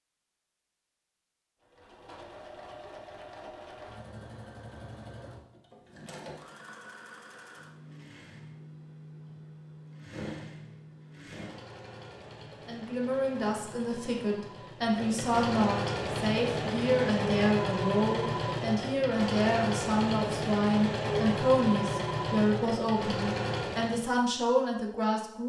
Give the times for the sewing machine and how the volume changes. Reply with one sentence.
The sewing machine can be heard from 1.6 to 24.1 s, getting louder.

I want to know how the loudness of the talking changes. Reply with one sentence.
The volume of the talking stays about the same.